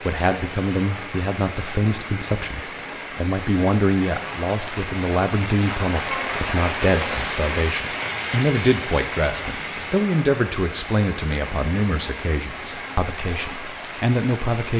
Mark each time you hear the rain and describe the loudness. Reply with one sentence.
The rain can be heard from 0.0 to 14.7 s, getting louder then quieter.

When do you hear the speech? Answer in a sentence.
The speech can be heard from 0.0 to 14.7 s.